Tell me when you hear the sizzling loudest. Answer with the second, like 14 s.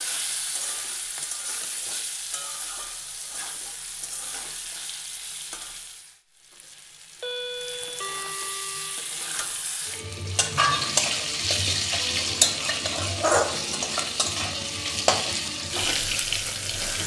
13 s.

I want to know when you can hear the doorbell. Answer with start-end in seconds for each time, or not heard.
7.2-9.1.